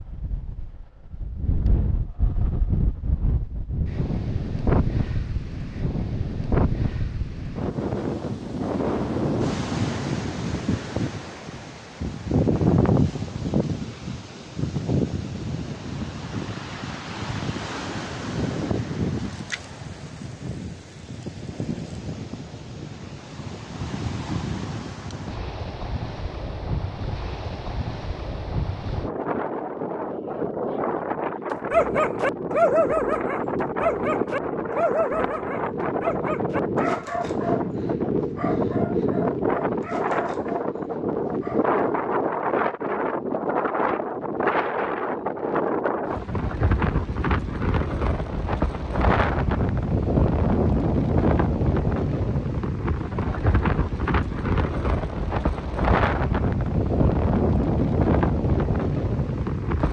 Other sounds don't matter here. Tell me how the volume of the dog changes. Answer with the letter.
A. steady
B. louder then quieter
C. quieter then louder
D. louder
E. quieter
E.